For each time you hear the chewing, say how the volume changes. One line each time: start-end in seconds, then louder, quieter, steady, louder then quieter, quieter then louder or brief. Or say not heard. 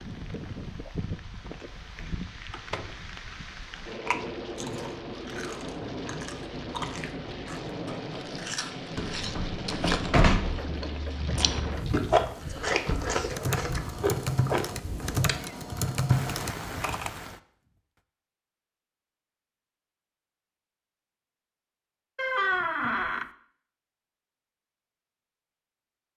4.0-15.4 louder.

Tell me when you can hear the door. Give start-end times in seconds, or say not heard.
2.1-3.0, 8.9-10.6, 22.1-23.3.